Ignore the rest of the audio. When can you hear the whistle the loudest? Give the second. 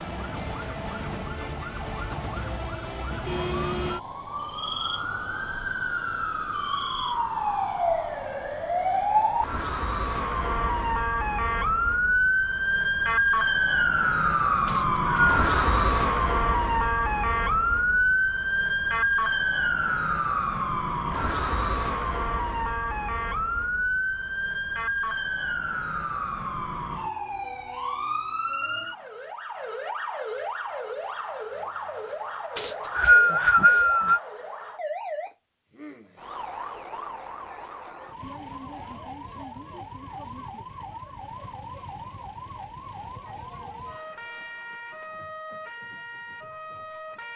33 s.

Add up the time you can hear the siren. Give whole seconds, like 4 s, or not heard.
47 s.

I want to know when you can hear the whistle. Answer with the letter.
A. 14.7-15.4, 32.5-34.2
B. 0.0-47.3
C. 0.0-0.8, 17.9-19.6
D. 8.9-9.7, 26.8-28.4
A.